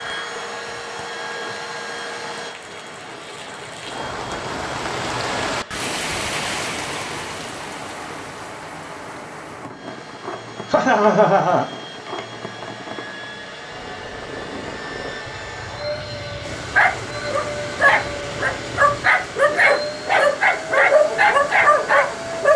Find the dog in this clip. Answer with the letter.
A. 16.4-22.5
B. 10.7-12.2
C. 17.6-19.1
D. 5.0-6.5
A.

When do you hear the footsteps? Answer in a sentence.
The footsteps can't be heard in this clip.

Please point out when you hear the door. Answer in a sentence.
You can't hear the door here.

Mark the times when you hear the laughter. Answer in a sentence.
The laughter can be heard from 10.7 to 12.2 s.